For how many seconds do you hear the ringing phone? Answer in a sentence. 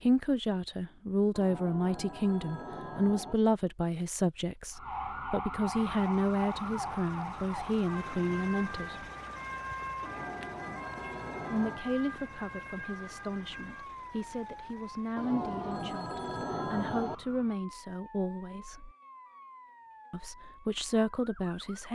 You can hear the ringing phone for 6 seconds altogether.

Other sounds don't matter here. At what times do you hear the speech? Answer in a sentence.
You can hear the speech from 0.0 to 9.1 s, from 11.5 to 18.9 s and from 20.1 to 21.8 s.